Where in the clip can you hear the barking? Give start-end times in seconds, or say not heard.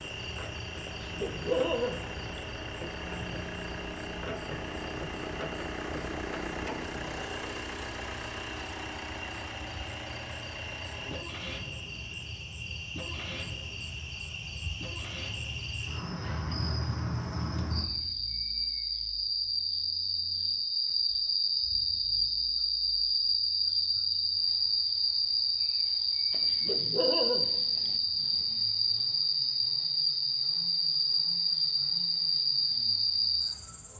0.8-2.4, 26.3-27.9.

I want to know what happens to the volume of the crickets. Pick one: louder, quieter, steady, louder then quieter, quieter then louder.
louder.